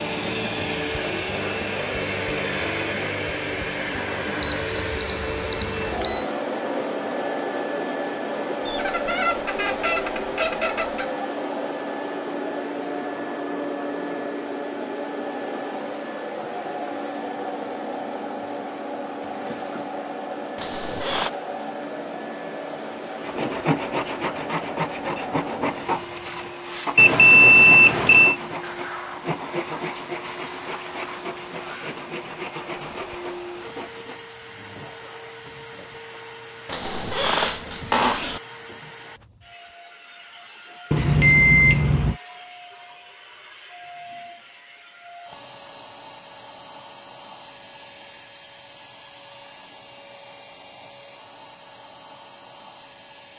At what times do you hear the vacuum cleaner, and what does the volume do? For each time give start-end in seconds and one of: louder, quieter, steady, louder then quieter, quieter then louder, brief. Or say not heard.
0.0-53.3 quieter.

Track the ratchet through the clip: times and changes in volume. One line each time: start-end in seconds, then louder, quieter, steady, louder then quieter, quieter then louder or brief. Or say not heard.
not heard.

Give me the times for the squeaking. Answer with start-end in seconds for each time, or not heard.
8.7-11.2, 20.6-21.3, 36.6-38.4.